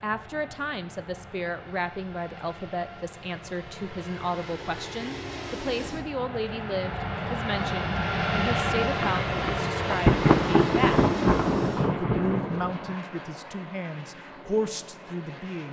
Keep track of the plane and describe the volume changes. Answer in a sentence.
The loudness of the plane goes up, then down.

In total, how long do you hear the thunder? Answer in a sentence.
You can hear the thunder for 4 seconds altogether.